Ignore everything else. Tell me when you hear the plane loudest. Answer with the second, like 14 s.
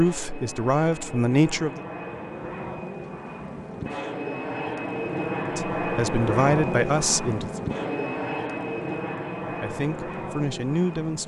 6 s.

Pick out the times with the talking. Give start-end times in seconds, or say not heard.
0.0-1.8, 5.5-7.5, 9.4-11.2.